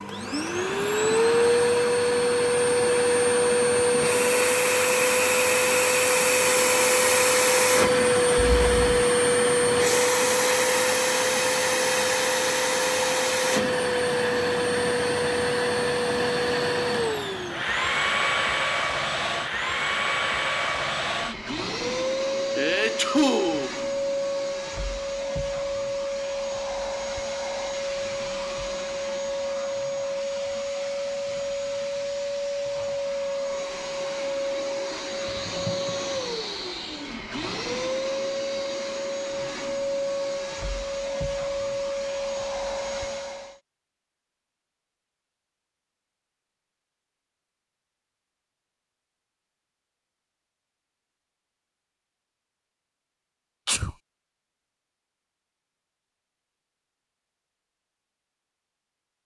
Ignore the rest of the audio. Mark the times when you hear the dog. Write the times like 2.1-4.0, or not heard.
not heard.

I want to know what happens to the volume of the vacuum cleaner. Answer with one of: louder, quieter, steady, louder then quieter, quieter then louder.
quieter.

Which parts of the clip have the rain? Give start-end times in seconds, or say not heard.
not heard.